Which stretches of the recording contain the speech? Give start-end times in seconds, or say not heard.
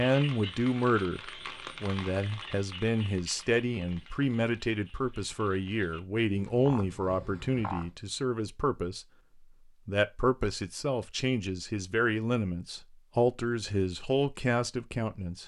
0.0-9.1, 9.8-15.4.